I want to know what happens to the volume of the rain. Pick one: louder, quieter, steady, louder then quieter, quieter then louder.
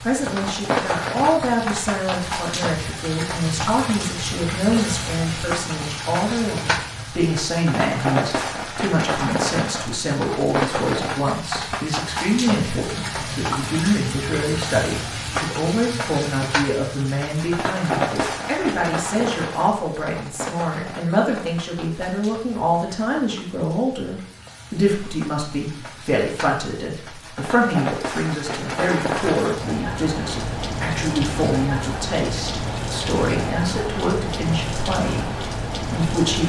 quieter then louder.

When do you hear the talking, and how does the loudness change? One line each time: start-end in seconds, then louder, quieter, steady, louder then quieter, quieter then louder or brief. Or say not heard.
0.0-36.4 steady.